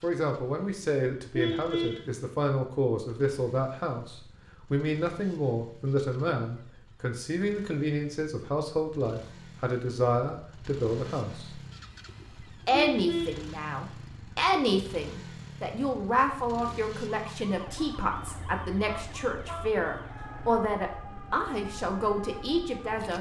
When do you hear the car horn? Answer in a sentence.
You can hear the car horn from 0.7 to 2.1 s, from 12.1 to 13.4 s and from 18.2 to 19.8 s.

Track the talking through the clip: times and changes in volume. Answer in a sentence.
The talking can be heard from 0.0 to 11.6 s, at a steady volume; and from 12.7 to 23.1 s, at a steady volume.